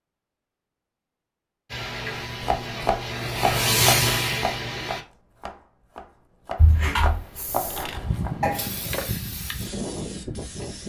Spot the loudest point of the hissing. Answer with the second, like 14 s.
4 s.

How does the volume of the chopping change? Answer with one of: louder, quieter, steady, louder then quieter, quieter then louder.
quieter then louder.